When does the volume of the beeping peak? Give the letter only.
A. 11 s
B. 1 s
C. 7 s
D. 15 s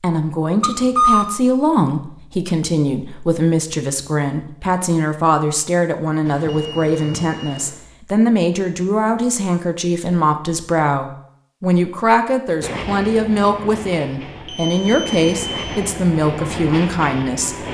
B.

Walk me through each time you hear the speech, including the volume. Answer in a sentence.
The speech can be heard from 0.0 to 17.6 s, at a steady volume.